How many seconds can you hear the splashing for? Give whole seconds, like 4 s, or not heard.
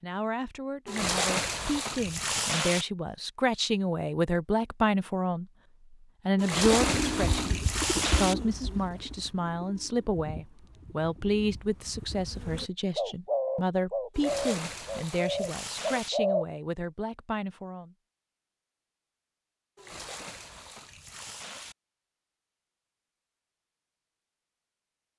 8 s.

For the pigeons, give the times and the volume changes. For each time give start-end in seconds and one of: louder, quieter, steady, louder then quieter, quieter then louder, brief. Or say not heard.
6.6-16.4 quieter then louder.